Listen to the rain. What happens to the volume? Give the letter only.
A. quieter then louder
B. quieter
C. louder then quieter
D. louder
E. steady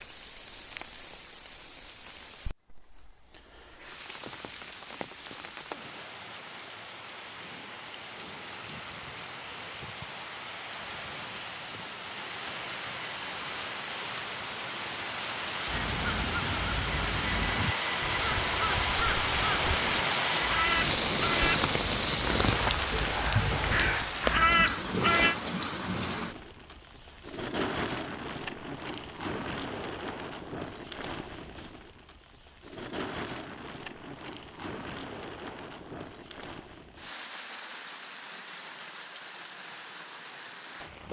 C.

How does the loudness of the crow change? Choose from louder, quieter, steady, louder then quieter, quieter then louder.
louder.